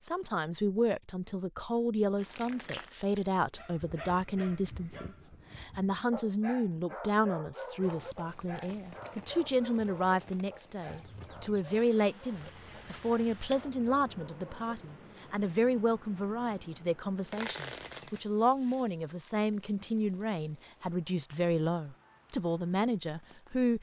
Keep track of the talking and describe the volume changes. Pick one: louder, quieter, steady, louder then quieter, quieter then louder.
steady.